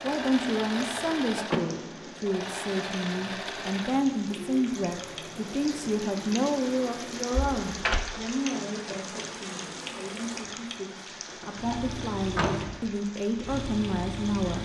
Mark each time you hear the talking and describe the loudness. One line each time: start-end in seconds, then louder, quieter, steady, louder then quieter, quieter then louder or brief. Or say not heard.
0.0-14.6 quieter then louder.